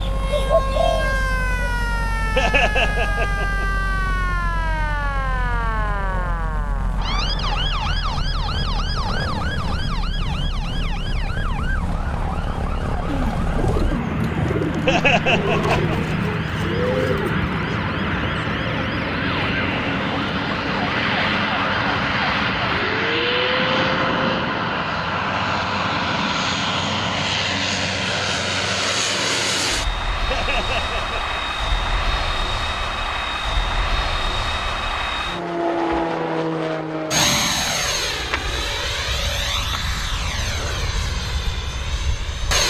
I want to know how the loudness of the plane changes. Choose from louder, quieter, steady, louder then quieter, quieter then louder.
louder.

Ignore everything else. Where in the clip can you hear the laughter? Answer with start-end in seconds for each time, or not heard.
2.4-3.7, 14.8-16.1, 30.3-31.4.